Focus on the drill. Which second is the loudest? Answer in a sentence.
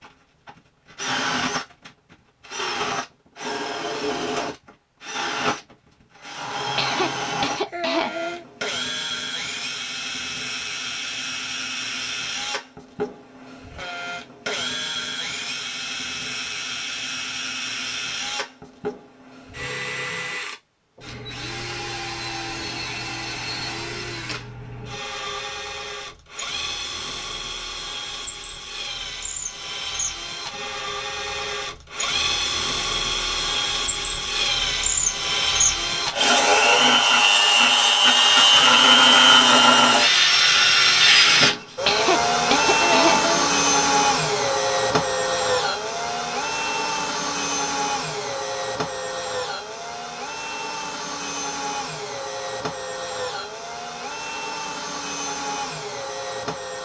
The loudest moment of the drill is at 39 seconds.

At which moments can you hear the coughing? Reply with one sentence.
You can hear the coughing from 6.8 to 8.4 s and from 41.9 to 43.5 s.